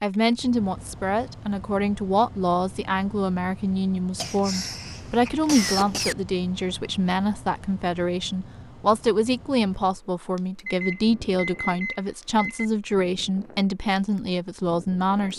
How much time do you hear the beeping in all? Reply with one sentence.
The beeping can be heard for 2 seconds in total.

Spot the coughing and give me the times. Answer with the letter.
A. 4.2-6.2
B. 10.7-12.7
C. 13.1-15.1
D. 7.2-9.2
A.